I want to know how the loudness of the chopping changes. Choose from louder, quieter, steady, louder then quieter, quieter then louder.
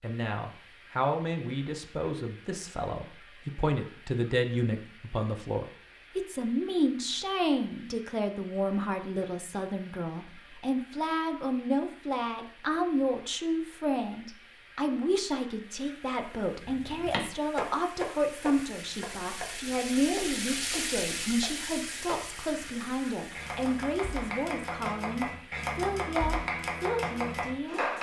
quieter then louder.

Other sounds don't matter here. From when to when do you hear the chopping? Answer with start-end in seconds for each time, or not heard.
16.6-27.9.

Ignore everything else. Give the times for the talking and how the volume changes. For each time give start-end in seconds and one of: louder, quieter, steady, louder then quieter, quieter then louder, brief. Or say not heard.
0.0-27.9 steady.